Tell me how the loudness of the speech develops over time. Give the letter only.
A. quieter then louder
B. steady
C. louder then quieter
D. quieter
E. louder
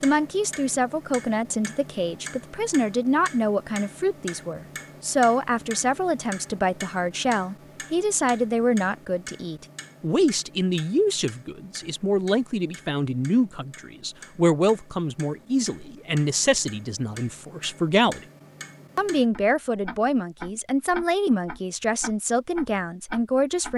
B.